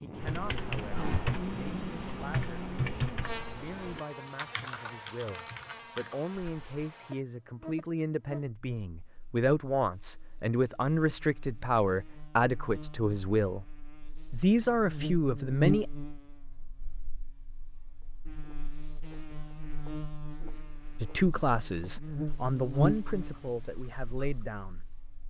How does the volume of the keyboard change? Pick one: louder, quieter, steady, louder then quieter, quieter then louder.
quieter.